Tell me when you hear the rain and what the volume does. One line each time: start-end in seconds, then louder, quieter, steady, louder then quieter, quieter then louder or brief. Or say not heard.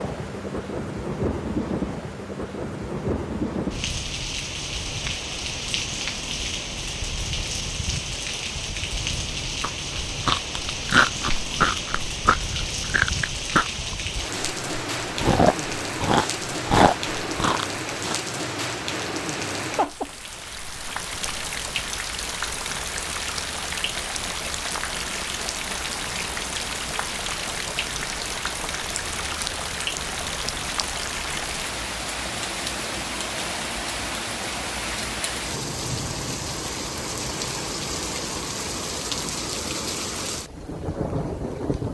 0.0-41.8 steady.